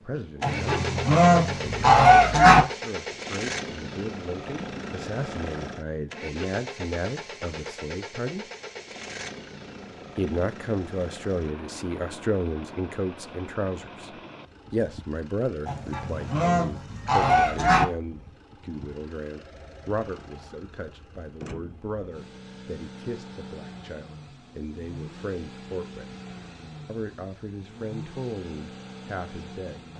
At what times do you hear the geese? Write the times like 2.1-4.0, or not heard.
0.4-2.6, 15.7-17.9.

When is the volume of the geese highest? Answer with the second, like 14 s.
2 s.